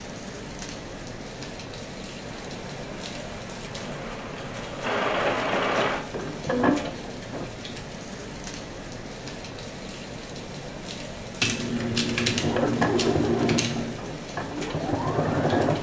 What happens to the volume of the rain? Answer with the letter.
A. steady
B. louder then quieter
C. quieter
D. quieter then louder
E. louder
A.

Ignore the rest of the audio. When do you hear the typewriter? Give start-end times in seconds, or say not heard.
11.4-13.9.